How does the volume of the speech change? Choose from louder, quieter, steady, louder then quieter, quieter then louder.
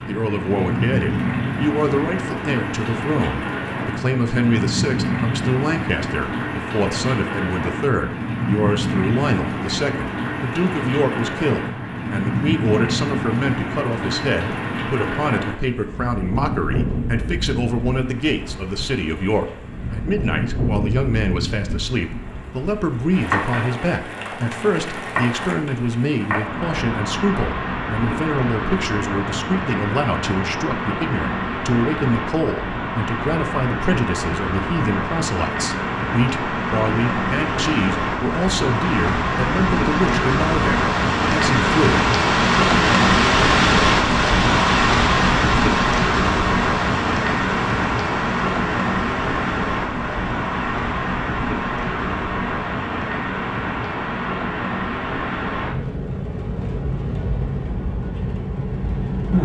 steady.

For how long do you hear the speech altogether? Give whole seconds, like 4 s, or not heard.
42 s.